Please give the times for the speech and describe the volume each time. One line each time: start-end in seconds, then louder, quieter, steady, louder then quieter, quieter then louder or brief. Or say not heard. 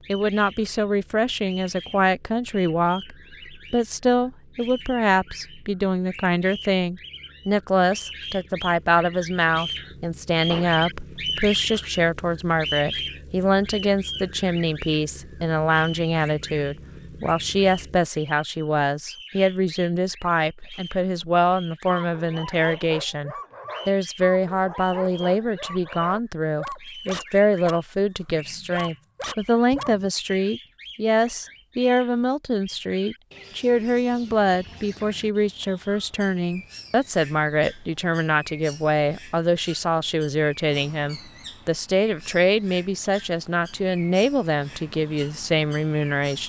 0.1-46.4 steady.